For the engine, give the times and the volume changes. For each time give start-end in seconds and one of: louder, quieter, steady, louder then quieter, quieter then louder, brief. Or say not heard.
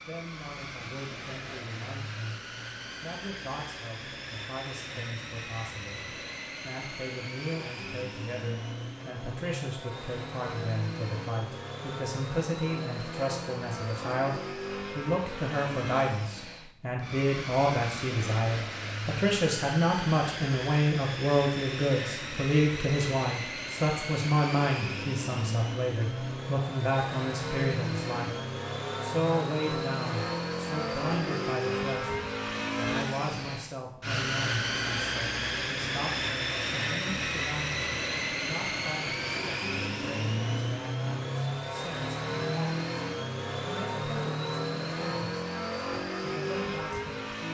0.0-47.4 louder.